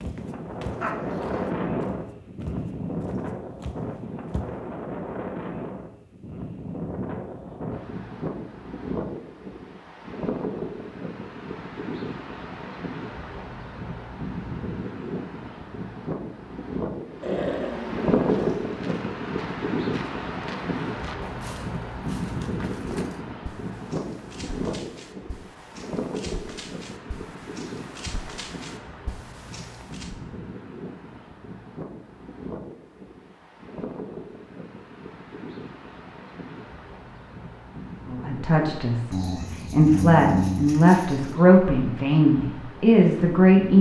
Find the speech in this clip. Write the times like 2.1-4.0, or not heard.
38.0-43.7.